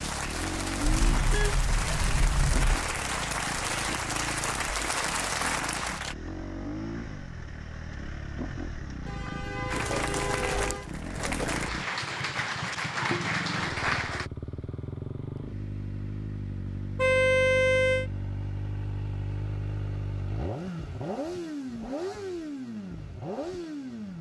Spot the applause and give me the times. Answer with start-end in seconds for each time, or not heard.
0.0-6.2, 9.7-14.3.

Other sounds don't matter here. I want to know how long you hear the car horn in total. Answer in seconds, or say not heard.
5 s.